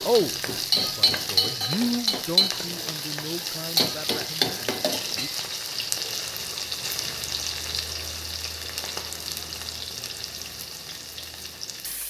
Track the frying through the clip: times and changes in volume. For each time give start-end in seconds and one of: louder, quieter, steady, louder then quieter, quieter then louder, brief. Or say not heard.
0.0-12.0 quieter.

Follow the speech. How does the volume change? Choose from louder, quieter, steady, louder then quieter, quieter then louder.
louder then quieter.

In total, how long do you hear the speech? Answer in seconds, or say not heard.
5 s.